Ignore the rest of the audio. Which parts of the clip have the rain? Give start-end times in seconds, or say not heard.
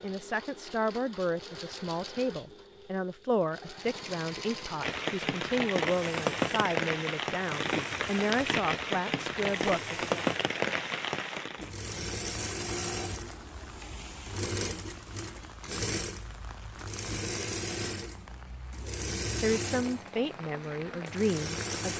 4.8-21.9.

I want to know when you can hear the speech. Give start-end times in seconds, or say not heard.
0.0-10.2, 18.8-21.9.